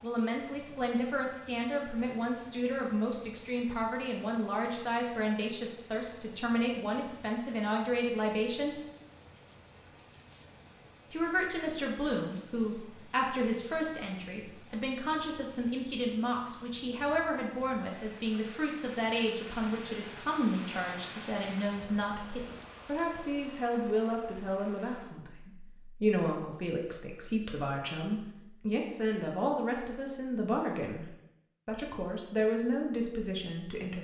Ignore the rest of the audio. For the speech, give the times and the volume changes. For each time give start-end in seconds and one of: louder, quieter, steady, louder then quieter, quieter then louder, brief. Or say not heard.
0.0-8.8 steady
11.1-34.0 steady.